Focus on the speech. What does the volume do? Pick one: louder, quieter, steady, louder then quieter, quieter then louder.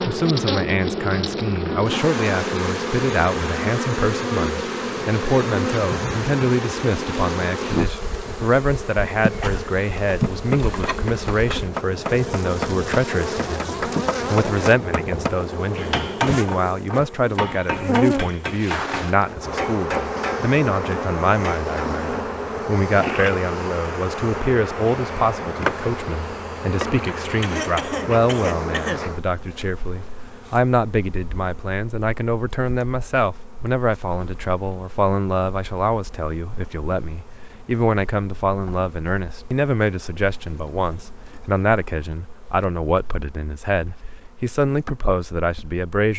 steady.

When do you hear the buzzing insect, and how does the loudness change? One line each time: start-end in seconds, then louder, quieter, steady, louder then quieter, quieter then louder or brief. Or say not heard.
0.0-45.9 quieter.